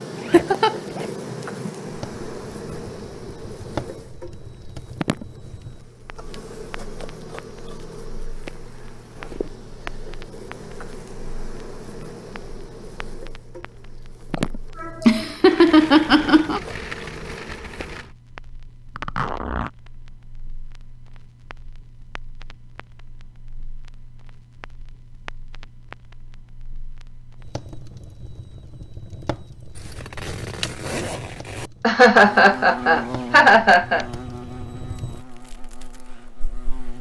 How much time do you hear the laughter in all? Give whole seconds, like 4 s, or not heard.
5 s.